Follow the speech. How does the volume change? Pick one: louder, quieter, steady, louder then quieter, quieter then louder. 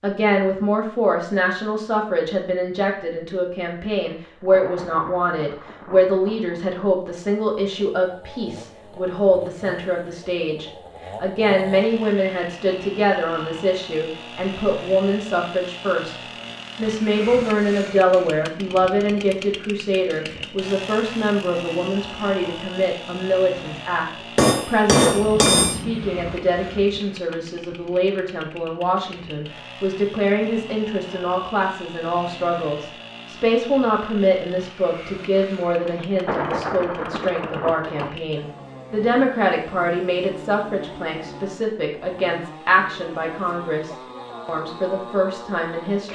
steady.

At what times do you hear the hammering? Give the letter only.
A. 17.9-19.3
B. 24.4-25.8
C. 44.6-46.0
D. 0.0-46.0
B.